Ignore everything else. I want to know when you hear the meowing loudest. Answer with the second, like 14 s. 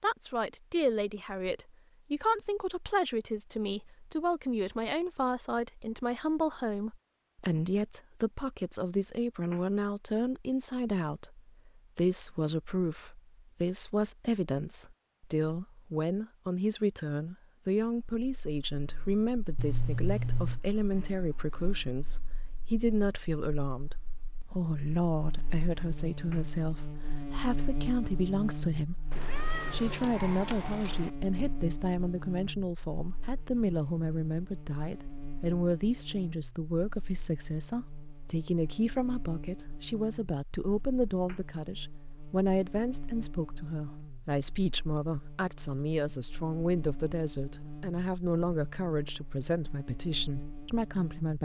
20 s.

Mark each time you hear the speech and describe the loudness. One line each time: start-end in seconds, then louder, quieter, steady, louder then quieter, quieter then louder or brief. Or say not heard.
0.0-29.1 steady
29.7-51.4 steady.